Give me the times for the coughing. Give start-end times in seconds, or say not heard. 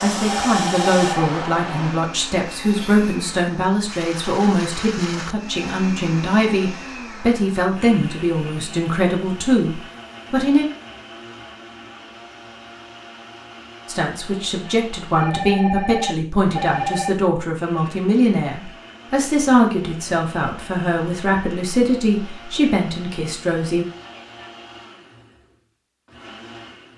not heard.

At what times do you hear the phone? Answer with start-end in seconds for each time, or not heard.
0.2-1.3, 15.1-17.1.